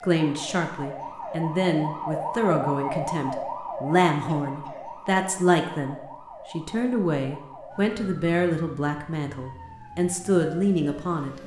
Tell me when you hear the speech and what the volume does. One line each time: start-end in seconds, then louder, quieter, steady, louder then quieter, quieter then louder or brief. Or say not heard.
0.0-11.4 steady.